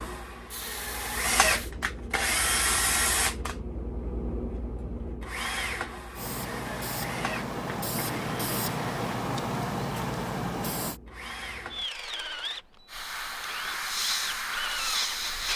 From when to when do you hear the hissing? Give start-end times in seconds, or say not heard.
0.5-1.8, 6.2-11.0, 12.8-15.5.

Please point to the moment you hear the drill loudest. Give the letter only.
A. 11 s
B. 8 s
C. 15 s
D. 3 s
D.